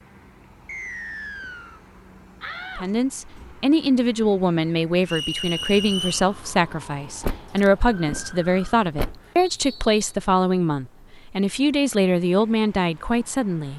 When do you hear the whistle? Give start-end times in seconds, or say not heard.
0.7-1.8, 5.0-6.2, 9.3-9.9.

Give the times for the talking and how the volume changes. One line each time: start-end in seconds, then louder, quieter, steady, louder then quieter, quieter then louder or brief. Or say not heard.
2.8-13.7 steady.